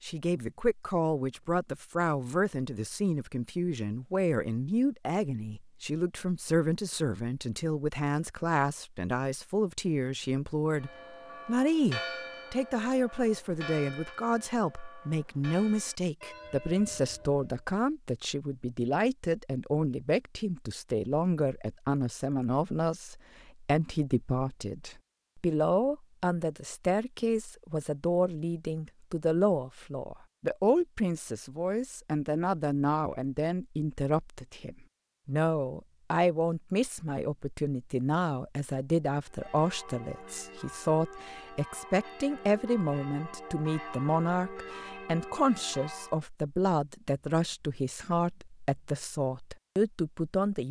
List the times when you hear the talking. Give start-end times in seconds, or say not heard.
0.0-50.6.